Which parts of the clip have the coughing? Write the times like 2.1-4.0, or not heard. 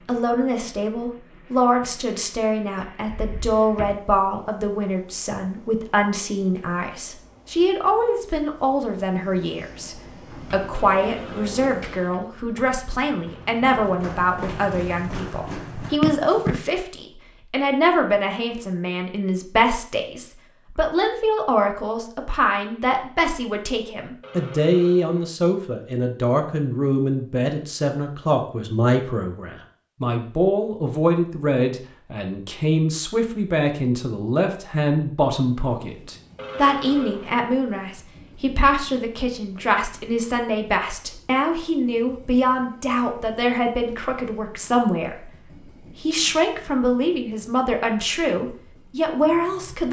not heard.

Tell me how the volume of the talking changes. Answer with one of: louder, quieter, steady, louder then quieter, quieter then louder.
steady.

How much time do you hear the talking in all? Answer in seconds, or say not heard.
49 s.